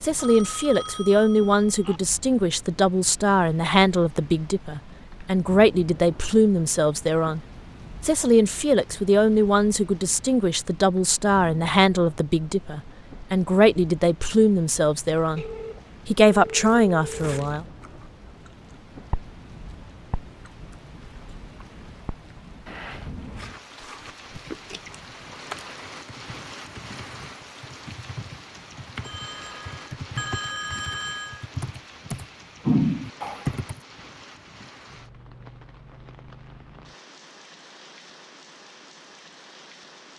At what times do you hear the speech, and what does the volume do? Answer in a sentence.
The speech can be heard from 0.0 to 7.4 s, at a steady volume; from 8.0 to 15.4 s, at a steady volume; and briefly from 16.1 to 17.6 s.